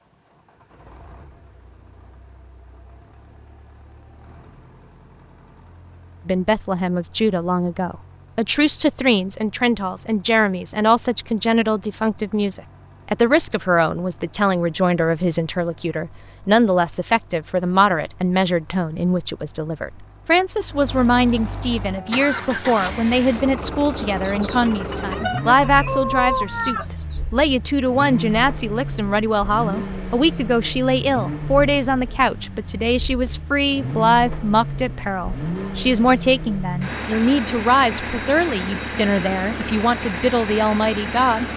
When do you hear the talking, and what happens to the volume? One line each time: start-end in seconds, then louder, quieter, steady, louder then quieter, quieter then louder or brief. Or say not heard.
6.2-41.5 steady.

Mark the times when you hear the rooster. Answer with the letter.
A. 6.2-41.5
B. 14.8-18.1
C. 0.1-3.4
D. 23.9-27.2
D.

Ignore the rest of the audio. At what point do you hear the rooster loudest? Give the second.
26 s.